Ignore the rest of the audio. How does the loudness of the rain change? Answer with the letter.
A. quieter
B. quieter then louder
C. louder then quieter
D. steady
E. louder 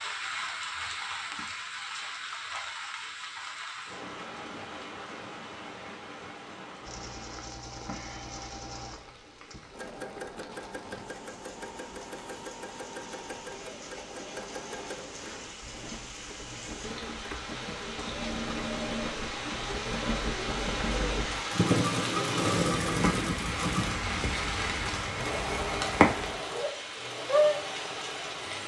B.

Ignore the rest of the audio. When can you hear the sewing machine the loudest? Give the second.
22 s.